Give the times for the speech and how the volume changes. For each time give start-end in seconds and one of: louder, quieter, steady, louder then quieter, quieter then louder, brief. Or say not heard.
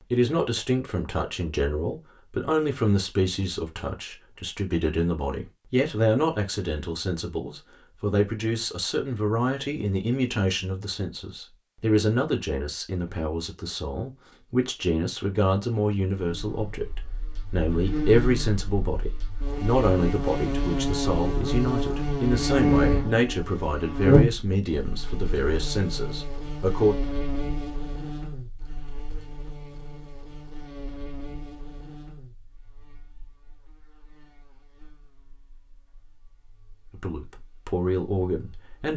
0.0-26.9 steady
36.9-38.9 brief.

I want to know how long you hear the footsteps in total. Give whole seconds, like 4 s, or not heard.
not heard.